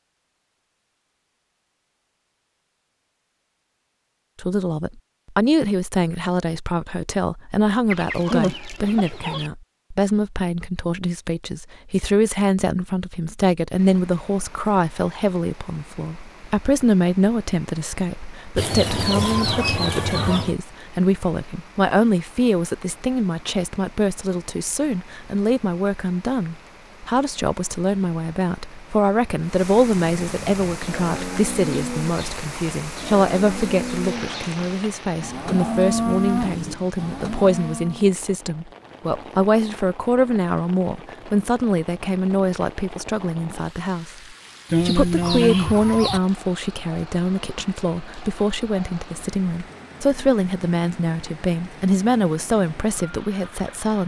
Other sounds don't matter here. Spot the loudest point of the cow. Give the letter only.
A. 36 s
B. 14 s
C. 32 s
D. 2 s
A.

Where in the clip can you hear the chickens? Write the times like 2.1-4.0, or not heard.
7.9-9.5, 18.6-20.6, 44.7-46.2.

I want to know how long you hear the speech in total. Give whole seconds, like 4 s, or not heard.
49 s.